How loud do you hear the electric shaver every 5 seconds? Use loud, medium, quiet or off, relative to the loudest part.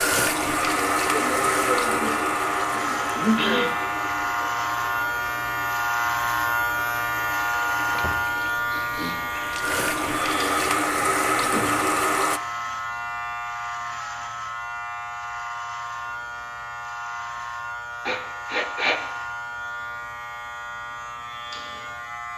loud, loud, medium, medium, medium.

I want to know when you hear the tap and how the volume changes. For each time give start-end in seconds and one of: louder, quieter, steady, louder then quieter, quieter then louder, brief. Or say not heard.
0.0-12.4 quieter then louder.